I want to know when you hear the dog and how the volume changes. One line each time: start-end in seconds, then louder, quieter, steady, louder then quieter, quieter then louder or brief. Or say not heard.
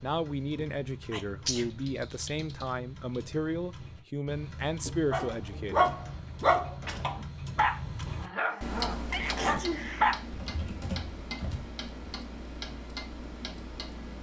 5.1-10.2 quieter.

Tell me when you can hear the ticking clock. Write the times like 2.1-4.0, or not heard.
0.0-14.1.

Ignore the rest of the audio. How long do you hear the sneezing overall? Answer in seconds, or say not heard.
2 s.